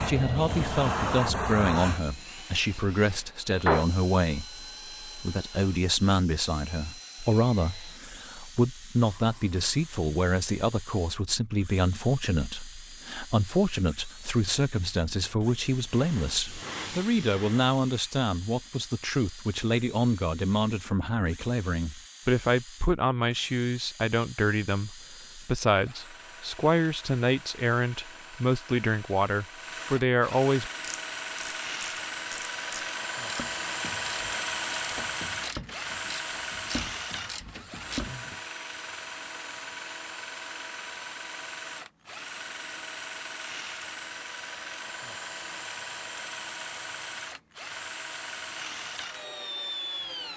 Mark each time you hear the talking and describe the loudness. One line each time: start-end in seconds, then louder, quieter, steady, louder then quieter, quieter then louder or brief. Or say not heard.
0.0-30.7 steady.